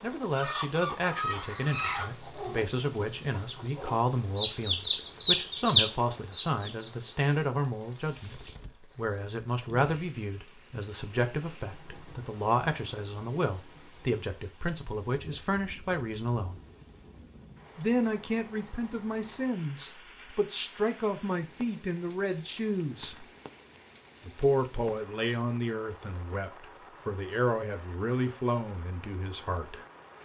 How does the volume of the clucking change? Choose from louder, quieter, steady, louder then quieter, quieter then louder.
quieter then louder.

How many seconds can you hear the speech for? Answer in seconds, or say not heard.
28 s.